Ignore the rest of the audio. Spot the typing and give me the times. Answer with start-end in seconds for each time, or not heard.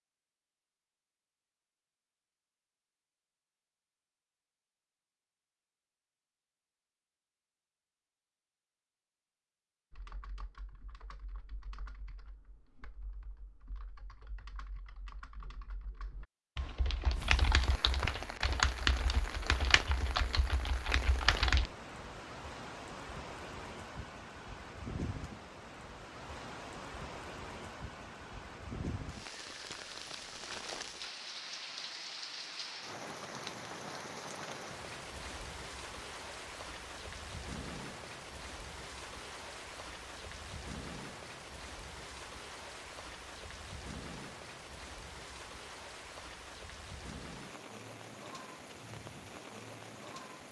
9.9-21.7.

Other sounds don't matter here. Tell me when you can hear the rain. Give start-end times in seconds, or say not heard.
17.1-50.4.